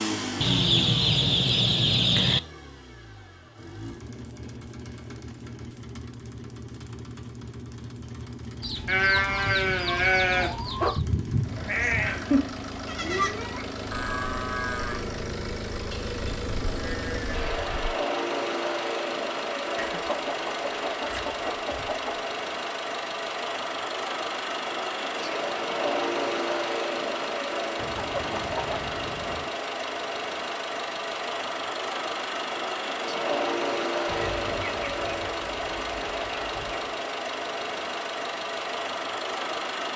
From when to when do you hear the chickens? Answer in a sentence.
You can hear the chickens from 0.4 to 2.4 s, from 8.6 to 11.1 s, from 19.8 to 22.3 s, from 27.8 to 29.5 s and from 34.0 to 37.0 s.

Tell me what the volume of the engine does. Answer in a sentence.
The volume of the engine goes up.